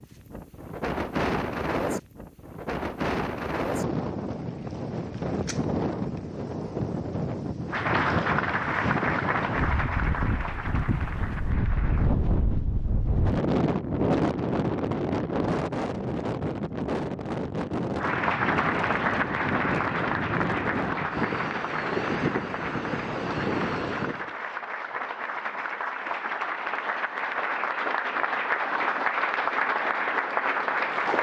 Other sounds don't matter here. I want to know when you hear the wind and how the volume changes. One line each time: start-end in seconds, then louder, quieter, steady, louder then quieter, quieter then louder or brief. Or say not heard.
0.0-24.4 steady.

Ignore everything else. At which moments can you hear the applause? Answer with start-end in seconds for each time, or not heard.
7.7-12.2, 17.9-31.1.